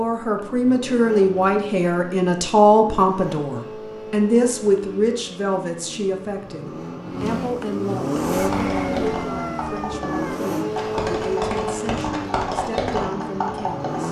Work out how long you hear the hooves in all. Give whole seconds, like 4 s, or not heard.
6 s.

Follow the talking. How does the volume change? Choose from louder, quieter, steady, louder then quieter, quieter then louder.
quieter.